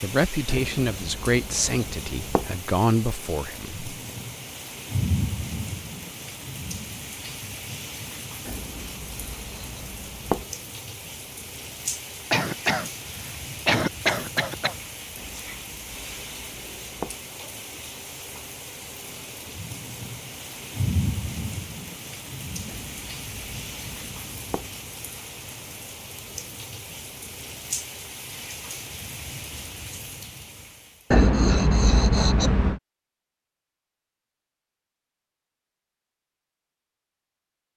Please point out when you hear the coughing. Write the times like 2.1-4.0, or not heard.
12.3-14.8.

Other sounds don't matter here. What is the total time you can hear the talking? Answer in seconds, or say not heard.
4 s.